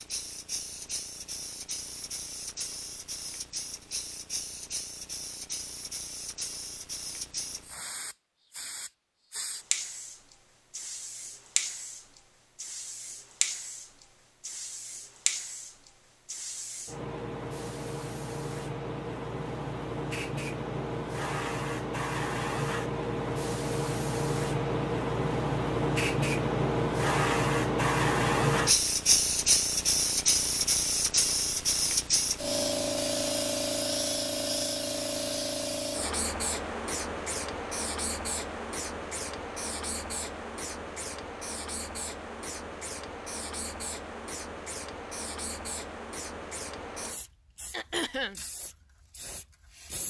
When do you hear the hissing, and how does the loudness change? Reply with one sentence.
The hissing can be heard from 0.0 to 50.0 s, getting louder then quieter.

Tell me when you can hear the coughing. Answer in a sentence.
You can hear the coughing from 47.7 to 48.4 s.